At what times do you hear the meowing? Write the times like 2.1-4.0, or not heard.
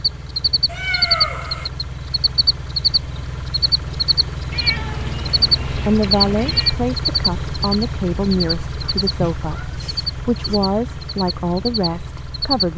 0.7-1.7, 4.5-6.8, 9.1-10.7.